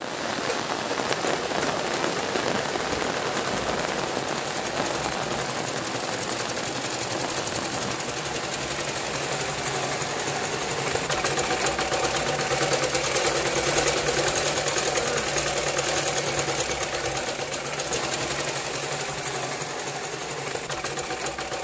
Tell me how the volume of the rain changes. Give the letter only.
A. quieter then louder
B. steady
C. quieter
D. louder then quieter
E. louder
C.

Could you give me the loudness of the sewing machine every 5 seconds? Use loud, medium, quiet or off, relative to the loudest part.
medium, medium, loud, loud, medium.